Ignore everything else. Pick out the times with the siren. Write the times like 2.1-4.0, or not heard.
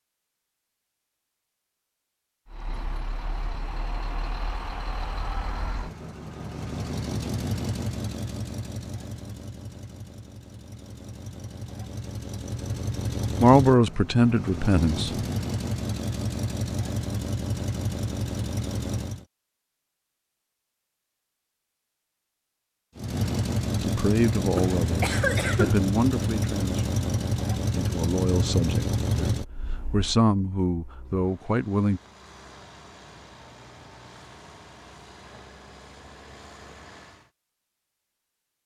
not heard.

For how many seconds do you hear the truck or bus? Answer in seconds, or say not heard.
31 s.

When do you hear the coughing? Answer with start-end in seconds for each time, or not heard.
24.6-25.8.